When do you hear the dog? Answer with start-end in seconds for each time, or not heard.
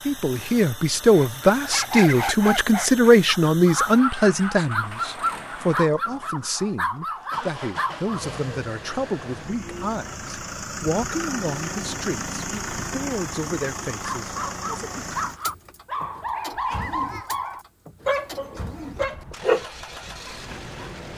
1.1-8.2, 14.0-20.9.